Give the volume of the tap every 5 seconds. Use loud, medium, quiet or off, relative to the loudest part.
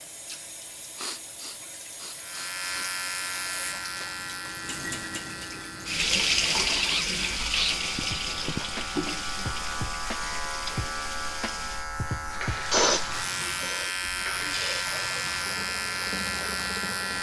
quiet, loud, medium, medium.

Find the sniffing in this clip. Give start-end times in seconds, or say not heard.
0.9-2.9, 6.7-8.7, 12.7-15.3.